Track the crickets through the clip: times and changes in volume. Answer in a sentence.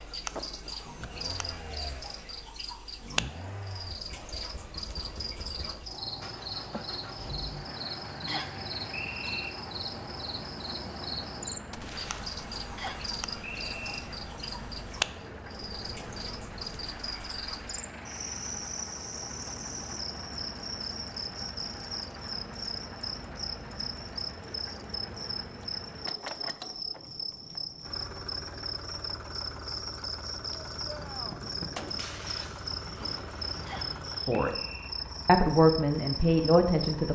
You can hear the crickets from 0.0 to 37.1 s, at a steady volume.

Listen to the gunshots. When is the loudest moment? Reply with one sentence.
The loudest moment of the gunshots is at 32 seconds.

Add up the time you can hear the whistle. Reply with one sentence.
The whistle can be heard for 4 seconds in total.